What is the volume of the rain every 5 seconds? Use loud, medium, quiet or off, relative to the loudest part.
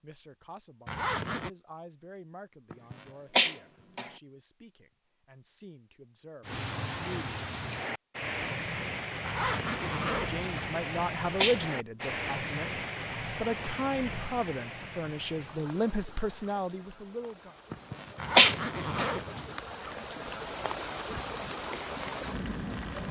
off, loud, loud, medium, loud.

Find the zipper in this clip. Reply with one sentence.
The zipper can be heard from 0.8 to 1.5 s, from 9.2 to 10.7 s and from 18.1 to 19.6 s.